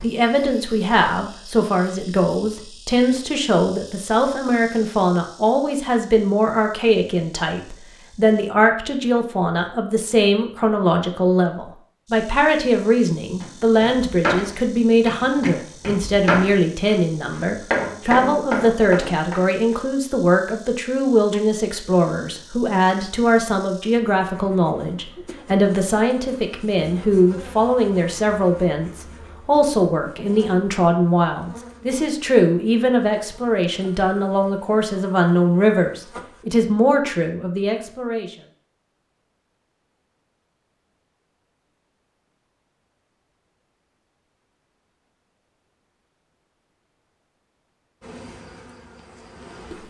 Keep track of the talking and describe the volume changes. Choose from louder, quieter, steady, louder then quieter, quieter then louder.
steady.